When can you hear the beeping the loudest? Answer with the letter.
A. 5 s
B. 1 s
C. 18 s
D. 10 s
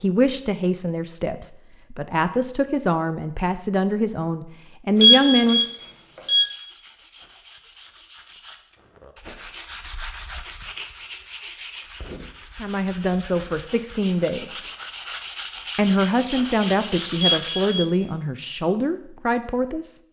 A.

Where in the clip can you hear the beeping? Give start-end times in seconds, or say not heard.
5.0-6.5, 17.2-18.1.